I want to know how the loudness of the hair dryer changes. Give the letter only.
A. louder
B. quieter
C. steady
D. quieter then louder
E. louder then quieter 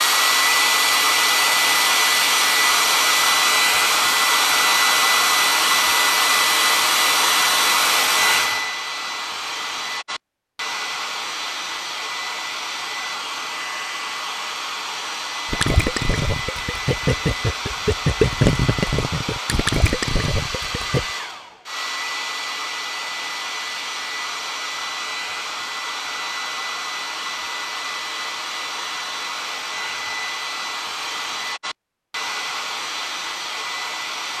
B.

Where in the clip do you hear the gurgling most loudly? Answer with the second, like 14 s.
18 s.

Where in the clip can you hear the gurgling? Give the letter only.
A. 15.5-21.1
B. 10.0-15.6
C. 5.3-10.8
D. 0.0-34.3
A.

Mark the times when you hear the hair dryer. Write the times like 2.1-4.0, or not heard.
0.0-34.3.